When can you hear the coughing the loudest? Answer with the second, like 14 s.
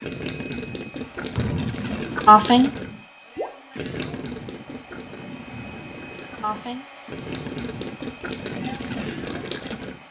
2 s.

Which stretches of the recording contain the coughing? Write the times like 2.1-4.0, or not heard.
1.4-2.7, 5.5-6.8.